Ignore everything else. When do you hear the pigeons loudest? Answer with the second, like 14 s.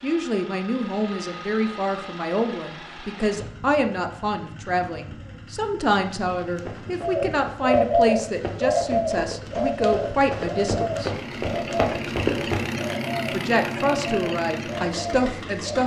8 s.